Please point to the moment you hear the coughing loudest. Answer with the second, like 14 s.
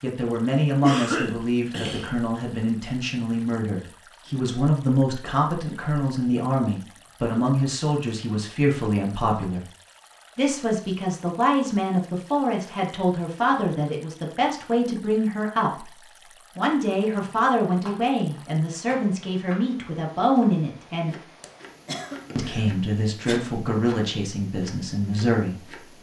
1 s.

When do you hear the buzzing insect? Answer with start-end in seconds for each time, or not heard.
not heard.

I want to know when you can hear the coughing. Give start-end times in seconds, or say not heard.
0.8-2.2, 21.4-23.4.